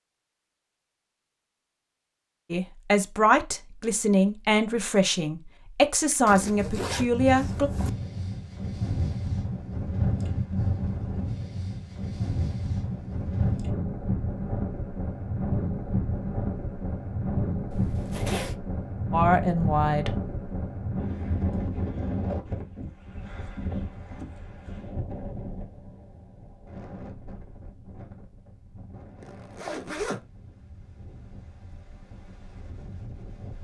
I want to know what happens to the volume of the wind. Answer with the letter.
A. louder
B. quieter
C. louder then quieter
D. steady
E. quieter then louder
B.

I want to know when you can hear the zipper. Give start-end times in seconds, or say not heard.
6.2-7.9, 17.7-18.6, 29.2-30.2.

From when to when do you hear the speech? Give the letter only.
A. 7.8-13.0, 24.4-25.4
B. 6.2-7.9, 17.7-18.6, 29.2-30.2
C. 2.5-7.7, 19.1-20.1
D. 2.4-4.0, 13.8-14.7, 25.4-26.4
C.